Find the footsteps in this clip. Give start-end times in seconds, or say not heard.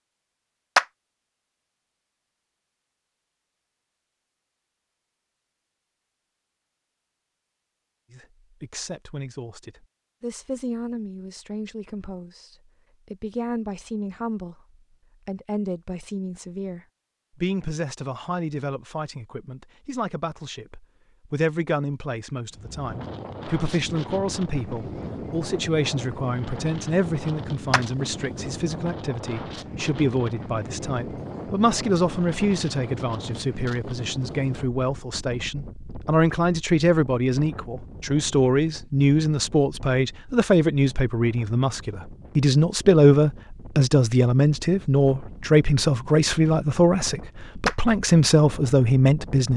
not heard.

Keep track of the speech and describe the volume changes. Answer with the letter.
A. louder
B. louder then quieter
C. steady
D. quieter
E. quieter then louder
A.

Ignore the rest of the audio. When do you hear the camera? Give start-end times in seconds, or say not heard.
not heard.